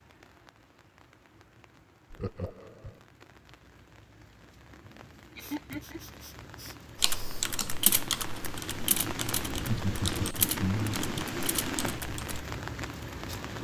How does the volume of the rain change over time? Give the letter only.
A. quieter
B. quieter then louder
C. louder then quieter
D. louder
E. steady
D.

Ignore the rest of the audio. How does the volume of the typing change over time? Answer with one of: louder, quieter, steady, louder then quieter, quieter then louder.
quieter.